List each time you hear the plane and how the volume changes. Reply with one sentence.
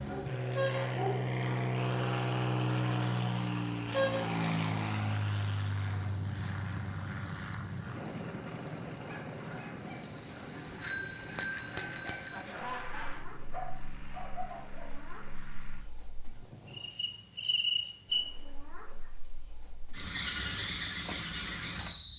The plane can be heard from 0.0 to 15.8 s, getting quieter.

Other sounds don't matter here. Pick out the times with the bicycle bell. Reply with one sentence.
You can hear the bicycle bell from 10.8 to 12.4 s.